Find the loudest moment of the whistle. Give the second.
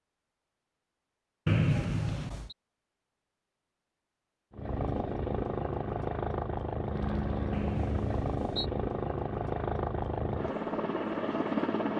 2 s.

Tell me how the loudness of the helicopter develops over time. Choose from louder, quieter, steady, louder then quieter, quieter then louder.
steady.